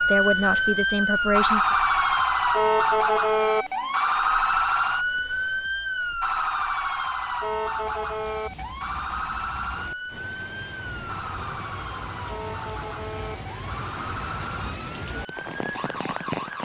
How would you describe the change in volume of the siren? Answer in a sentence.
The loudness of the siren goes down.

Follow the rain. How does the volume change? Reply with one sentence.
The loudness of the rain goes up.